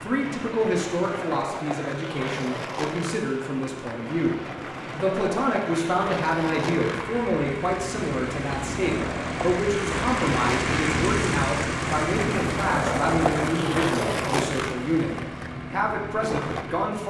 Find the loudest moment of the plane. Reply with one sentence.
The loudest moment of the plane is at 11 seconds.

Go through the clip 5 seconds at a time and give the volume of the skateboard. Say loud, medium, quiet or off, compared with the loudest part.
medium, medium, loud, medium.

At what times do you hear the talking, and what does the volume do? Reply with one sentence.
You can hear the talking from 0.0 to 15.1 s, at a steady volume; and briefly from 15.7 to 17.0 s.